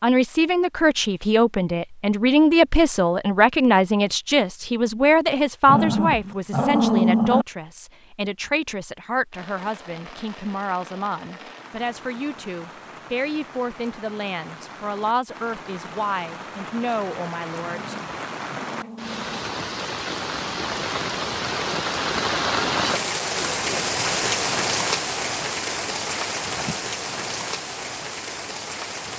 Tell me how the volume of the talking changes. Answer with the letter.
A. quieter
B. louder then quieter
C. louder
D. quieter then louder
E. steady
A.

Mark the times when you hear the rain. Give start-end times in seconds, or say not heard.
9.3-29.1.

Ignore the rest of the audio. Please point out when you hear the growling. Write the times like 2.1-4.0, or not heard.
5.7-7.5, 17.6-19.4.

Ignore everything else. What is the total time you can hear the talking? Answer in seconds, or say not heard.
18 s.